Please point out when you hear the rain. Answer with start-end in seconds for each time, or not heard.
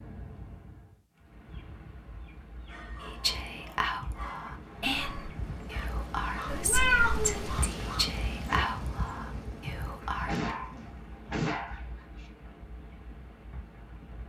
0.0-14.2.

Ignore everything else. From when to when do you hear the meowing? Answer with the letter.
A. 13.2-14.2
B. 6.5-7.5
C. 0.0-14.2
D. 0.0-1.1
B.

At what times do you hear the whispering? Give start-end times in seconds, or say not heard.
3.0-10.4.